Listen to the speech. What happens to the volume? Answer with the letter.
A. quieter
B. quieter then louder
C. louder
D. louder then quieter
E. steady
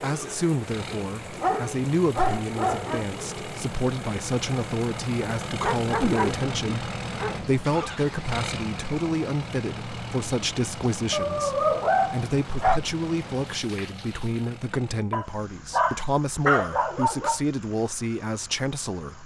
E.